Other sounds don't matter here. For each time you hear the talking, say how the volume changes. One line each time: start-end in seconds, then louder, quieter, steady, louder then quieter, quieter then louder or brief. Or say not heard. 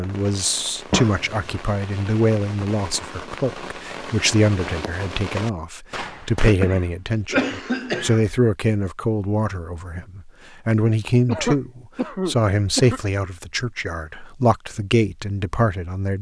0.0-16.1 steady.